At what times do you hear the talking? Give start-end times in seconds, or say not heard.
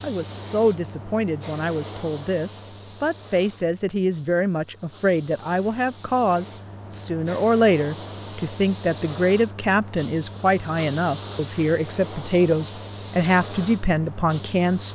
0.0-14.9.